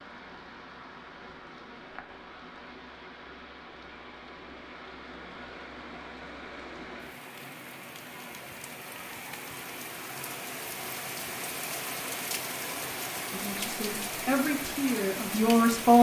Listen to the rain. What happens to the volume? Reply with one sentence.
The volume of the rain goes up.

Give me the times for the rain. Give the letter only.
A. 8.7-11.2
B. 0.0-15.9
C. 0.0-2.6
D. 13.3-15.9
B.